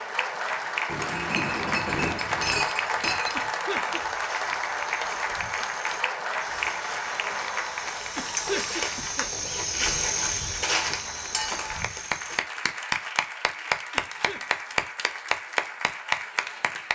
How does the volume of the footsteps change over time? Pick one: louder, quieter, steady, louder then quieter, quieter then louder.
louder.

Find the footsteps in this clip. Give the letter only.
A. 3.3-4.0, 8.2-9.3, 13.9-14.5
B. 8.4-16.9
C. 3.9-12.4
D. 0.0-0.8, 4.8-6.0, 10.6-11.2
C.